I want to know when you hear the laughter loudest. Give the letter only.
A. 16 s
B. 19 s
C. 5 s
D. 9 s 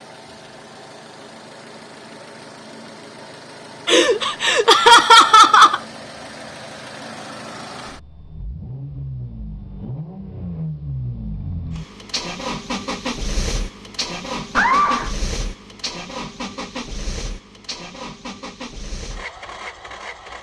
C.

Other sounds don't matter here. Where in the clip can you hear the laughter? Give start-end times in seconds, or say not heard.
3.9-5.8, 14.6-15.2.